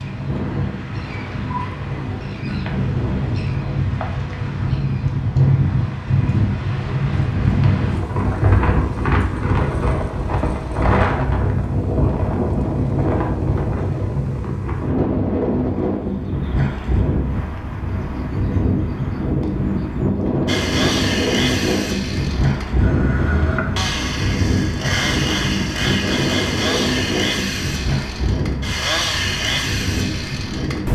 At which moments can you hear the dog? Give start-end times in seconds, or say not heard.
not heard.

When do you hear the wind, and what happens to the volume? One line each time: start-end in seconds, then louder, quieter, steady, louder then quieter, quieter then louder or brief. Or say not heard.
0.0-30.9 steady.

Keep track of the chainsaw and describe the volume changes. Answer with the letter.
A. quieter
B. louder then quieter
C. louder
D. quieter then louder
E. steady
E.